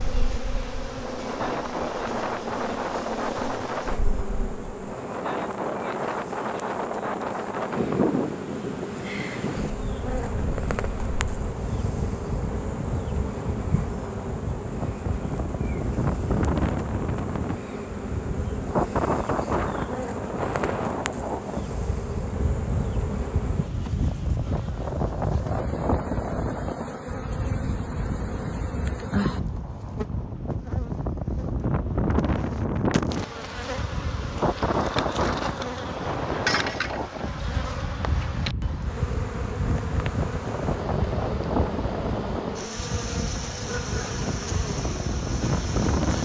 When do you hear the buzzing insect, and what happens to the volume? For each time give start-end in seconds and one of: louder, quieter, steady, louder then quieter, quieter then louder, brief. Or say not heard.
0.0-46.2 steady.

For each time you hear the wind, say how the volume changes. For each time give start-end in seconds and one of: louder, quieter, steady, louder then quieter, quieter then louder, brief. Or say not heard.
0.0-46.2 steady.